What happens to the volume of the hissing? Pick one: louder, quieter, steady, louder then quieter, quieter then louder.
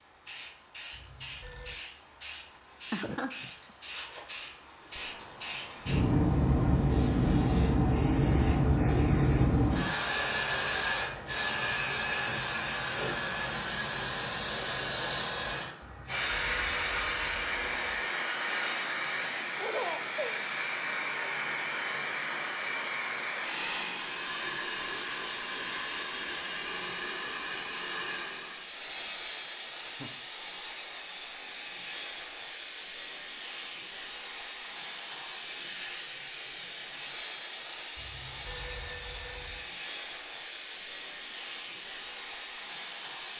quieter.